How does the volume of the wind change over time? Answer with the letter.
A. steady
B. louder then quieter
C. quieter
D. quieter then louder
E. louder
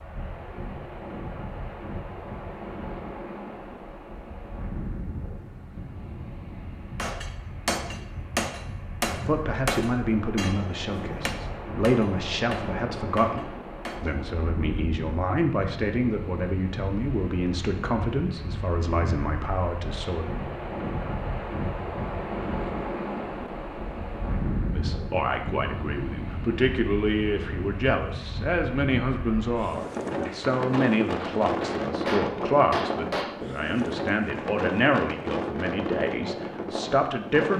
E.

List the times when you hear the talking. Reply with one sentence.
You can hear the talking from 9.2 to 20.3 s and from 24.8 to 37.5 s.